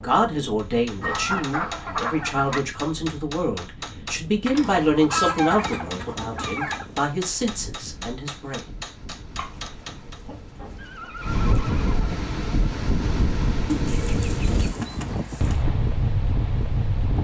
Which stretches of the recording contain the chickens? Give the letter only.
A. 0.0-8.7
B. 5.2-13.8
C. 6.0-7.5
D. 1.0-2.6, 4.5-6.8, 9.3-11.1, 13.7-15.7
D.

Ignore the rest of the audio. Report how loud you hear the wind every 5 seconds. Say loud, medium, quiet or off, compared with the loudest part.
quiet, quiet, loud, loud.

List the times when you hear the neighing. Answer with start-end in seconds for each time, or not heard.
10.8-12.2.